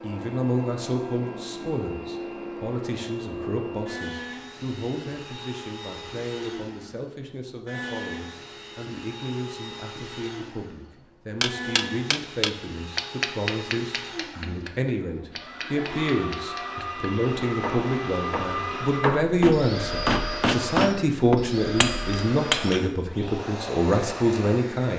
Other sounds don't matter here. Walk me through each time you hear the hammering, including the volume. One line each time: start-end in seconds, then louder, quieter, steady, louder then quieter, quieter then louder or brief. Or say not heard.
11.4-22.9 quieter then louder.